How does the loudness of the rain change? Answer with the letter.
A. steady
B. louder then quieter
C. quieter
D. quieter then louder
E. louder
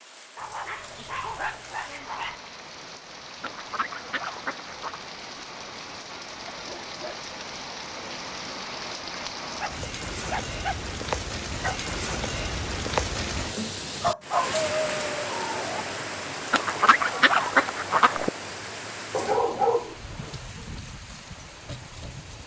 B.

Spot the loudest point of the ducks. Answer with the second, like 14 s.
17 s.